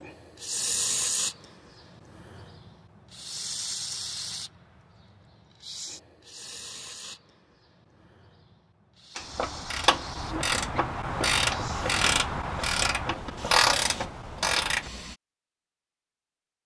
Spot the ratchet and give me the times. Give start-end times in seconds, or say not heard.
9.2-14.9.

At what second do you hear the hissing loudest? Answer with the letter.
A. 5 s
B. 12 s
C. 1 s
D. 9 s
C.